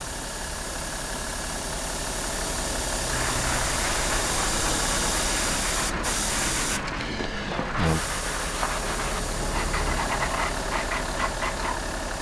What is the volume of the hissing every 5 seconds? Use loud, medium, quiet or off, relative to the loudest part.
loud, loud, medium.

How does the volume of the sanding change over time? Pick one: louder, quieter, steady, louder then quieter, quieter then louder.
steady.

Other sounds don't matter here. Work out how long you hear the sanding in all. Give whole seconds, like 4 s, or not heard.
9 s.